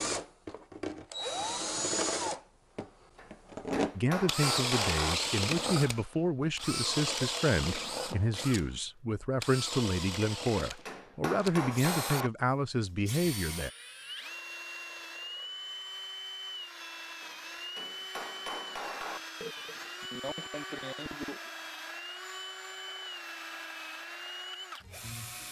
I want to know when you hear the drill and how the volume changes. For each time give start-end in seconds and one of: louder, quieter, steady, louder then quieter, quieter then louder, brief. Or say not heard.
0.0-25.4 quieter.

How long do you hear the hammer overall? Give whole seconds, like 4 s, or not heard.
6 s.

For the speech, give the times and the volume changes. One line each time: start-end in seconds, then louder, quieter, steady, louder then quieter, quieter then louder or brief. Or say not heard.
4.0-13.7 steady.